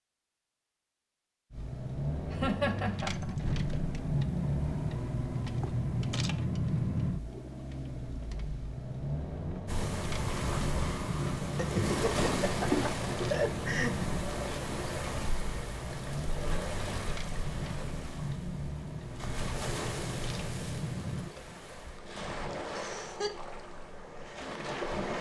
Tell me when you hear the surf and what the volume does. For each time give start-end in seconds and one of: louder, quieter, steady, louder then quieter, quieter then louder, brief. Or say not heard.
9.7-25.1 quieter.